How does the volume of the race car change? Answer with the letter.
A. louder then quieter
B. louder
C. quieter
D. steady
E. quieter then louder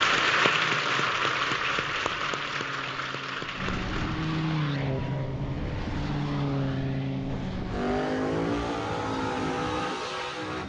B.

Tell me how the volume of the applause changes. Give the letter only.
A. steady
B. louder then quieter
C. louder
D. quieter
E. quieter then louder
D.